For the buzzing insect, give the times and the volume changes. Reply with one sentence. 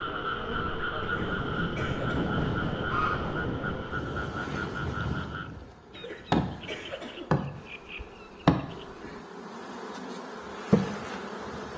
The buzzing insect can be heard from 0.0 to 11.7 s, getting louder.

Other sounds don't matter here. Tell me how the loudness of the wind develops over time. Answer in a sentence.
The volume of the wind goes up, then down.